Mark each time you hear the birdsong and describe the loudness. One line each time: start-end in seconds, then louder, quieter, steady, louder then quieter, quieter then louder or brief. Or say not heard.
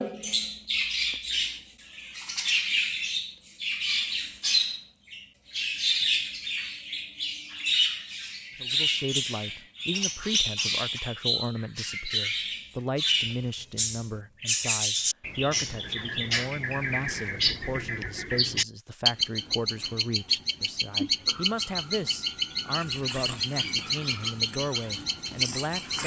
0.0-26.0 steady.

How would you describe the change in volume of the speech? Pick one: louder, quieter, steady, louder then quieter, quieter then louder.
steady.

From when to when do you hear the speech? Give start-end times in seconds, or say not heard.
8.6-26.0.